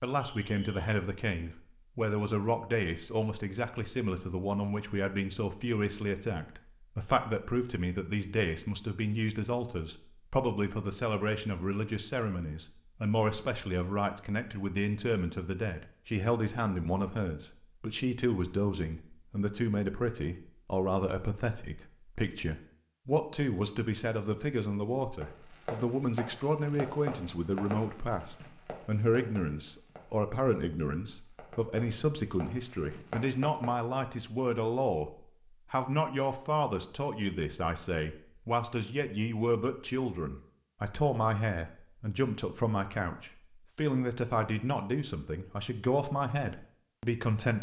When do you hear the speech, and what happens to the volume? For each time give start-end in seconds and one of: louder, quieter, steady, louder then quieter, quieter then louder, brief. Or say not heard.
0.0-35.1 steady
35.7-47.5 steady.